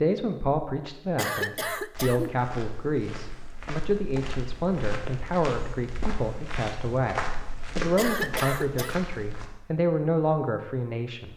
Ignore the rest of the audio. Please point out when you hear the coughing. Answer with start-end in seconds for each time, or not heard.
1.1-2.4, 8.0-8.9.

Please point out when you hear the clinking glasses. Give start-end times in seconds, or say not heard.
not heard.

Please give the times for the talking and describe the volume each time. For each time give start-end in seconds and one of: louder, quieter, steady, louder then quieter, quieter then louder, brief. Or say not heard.
0.0-11.3 steady.